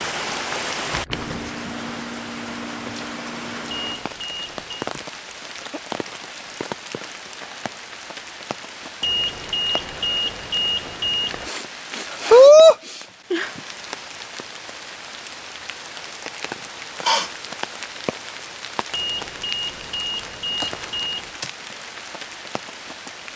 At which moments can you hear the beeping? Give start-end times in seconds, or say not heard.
3.7-4.9, 9.0-11.5, 18.9-21.4.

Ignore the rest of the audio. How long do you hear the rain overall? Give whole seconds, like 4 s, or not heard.
23 s.